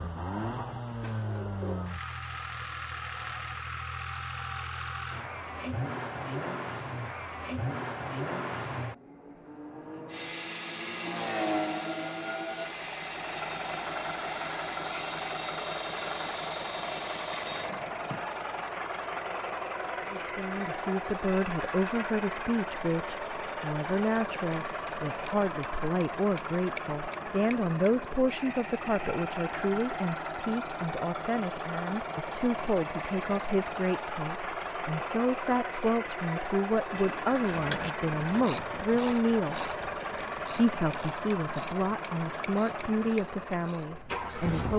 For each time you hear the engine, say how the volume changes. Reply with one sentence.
The engine can be heard from 0.0 to 44.7 s, at a steady volume.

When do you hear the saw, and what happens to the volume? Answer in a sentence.
You can hear the saw from 10.1 to 17.7 s, at a steady volume.